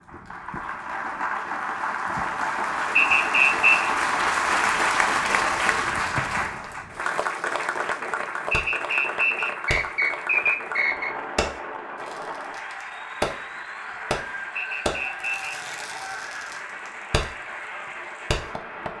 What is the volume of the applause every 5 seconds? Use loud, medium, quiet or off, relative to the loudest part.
loud, loud, medium, medium.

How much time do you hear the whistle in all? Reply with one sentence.
The whistle can be heard for 5 seconds in total.